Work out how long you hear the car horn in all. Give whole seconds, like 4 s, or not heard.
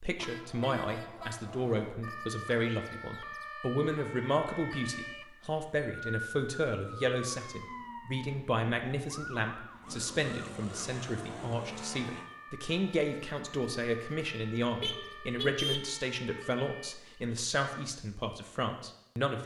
3 s.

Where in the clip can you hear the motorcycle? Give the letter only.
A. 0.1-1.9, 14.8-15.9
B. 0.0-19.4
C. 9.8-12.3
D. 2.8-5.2
C.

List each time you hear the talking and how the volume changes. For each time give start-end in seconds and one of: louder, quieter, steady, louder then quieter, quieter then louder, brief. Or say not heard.
0.0-19.4 steady.